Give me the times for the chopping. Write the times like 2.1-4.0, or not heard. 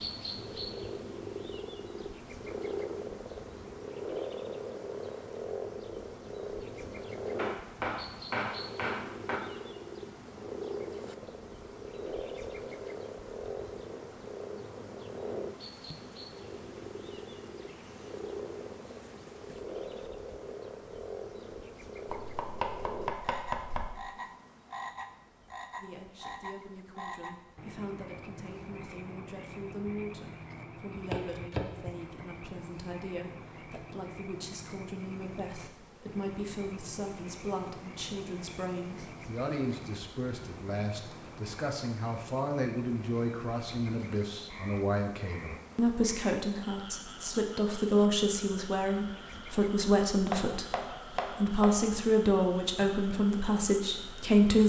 7.3-9.4, 22.1-23.9, 30.9-31.9, 50.3-51.9.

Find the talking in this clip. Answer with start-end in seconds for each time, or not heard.
25.8-54.6.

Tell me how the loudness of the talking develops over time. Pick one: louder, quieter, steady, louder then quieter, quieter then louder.
louder.